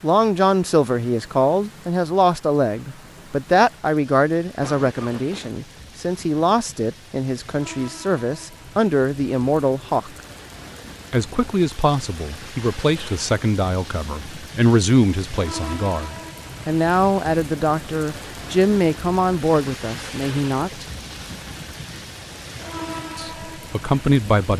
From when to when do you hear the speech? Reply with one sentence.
The speech can be heard from 0.0 to 10.1 s, from 11.1 to 20.9 s and from 23.1 to 24.5 s.